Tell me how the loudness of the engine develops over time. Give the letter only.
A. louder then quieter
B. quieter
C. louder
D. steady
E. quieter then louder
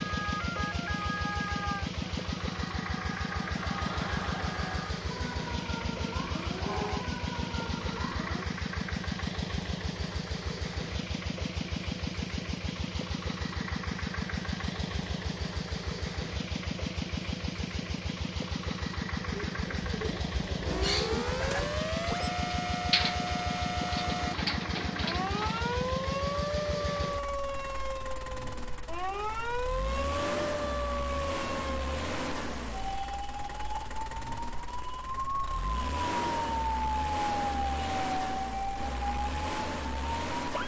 D.